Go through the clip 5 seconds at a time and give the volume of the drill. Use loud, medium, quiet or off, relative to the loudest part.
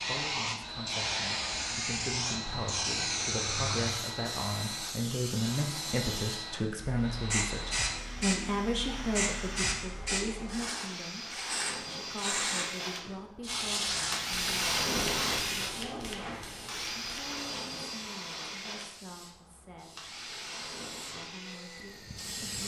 loud, medium, loud, loud, medium.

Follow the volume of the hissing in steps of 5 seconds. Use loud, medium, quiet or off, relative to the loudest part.
loud, loud, loud, medium, medium.